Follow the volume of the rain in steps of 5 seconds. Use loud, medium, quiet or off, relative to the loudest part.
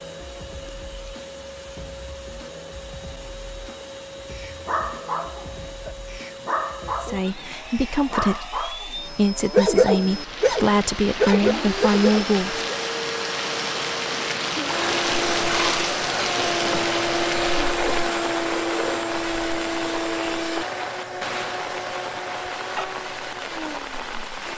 off, off, loud, loud, medium.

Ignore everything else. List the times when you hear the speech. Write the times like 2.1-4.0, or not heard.
7.0-12.7.